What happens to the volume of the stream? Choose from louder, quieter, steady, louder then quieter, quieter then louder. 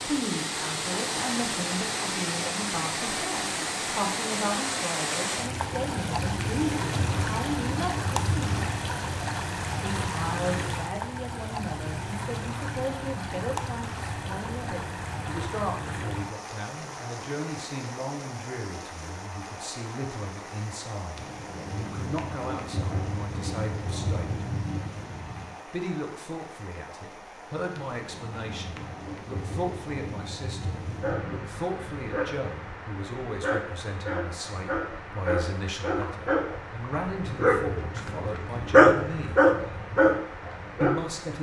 quieter.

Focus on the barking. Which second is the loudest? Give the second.
39 s.